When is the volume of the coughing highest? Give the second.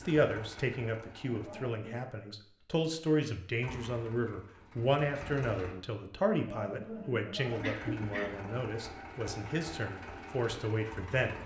8 s.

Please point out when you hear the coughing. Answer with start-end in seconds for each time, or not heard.
1.2-2.0, 6.3-8.6.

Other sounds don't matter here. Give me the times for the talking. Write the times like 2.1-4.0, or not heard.
0.0-11.3.